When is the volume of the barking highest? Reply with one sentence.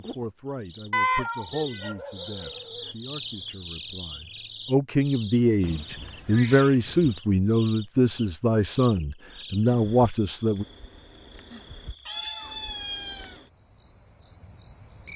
The loudest moment of the barking is at 1 second.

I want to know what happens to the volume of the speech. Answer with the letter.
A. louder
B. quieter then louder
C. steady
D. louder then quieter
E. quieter
B.